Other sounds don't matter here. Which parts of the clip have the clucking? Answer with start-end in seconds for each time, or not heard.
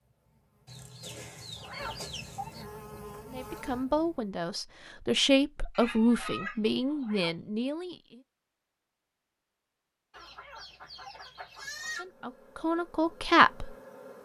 0.7-2.6, 5.7-7.2, 10.1-12.1.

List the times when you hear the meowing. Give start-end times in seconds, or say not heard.
1.6-3.0, 6.9-7.3, 10.2-11.2.